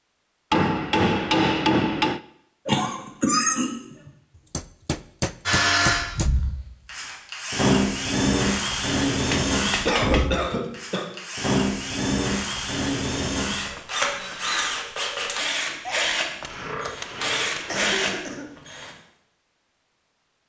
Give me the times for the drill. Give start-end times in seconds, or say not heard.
5.5-18.9.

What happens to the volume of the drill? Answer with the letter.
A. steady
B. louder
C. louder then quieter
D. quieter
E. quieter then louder
A.